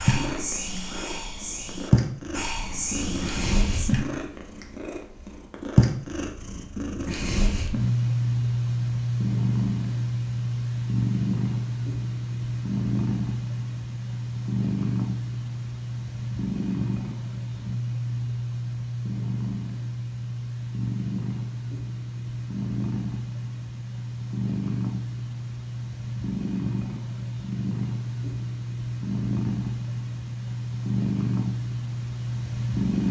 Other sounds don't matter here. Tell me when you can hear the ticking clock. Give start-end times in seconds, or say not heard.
not heard.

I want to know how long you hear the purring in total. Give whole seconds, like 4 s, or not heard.
33 s.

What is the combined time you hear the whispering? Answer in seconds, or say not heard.
4 s.